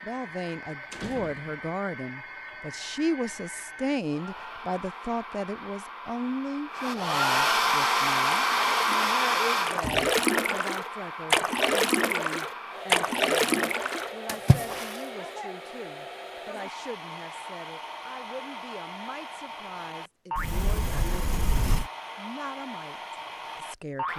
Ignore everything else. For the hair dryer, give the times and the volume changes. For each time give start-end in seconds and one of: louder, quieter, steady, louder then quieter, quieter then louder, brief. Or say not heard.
0.0-24.1 louder then quieter.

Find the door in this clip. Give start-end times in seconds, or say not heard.
0.9-1.6, 9.8-10.2, 20.4-21.9.